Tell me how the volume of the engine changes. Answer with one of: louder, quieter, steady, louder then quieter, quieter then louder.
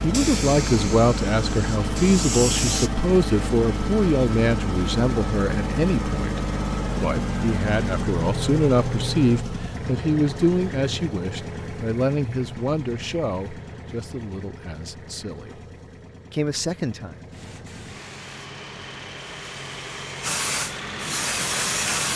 quieter then louder.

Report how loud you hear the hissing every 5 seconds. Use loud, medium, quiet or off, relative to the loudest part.
loud, off, off, quiet, loud.